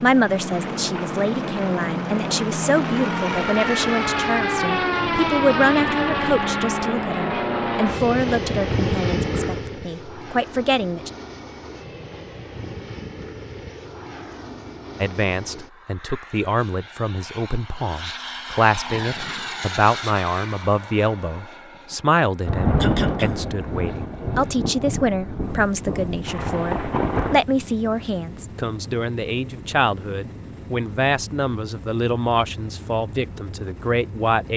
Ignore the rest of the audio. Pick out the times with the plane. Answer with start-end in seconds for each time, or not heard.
0.0-34.5.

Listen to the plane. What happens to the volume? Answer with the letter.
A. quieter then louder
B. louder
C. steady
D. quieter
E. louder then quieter
D.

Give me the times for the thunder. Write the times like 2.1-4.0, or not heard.
22.4-27.4.